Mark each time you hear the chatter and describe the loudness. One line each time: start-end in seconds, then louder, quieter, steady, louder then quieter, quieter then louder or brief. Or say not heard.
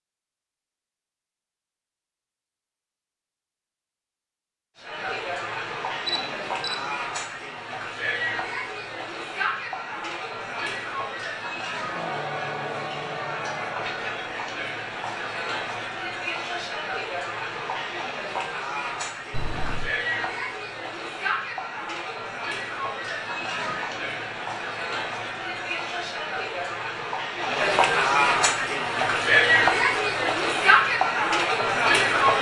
4.8-32.3 louder.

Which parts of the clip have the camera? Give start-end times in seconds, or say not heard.
6.0-6.9, 19.3-19.9.